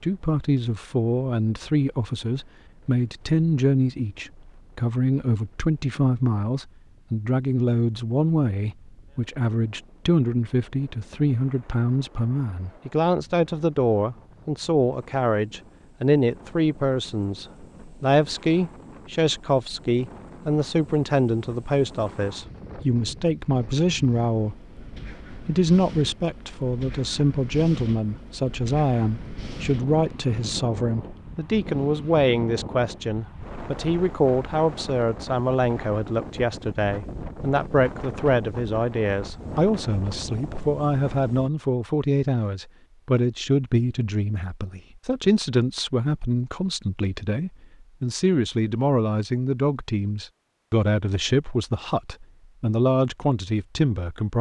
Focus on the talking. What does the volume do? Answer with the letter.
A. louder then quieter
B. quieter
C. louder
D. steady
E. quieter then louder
D.